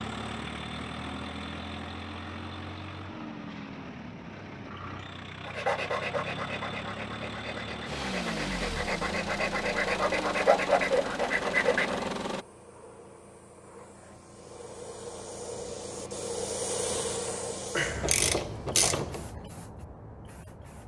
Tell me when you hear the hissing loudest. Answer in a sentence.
The loudest moment of the hissing is at 17 seconds.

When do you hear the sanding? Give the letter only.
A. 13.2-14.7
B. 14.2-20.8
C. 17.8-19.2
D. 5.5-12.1
D.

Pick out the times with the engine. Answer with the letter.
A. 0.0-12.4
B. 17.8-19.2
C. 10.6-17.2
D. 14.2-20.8
A.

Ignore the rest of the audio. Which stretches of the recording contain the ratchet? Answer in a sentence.
You can hear the ratchet from 17.8 to 19.2 s.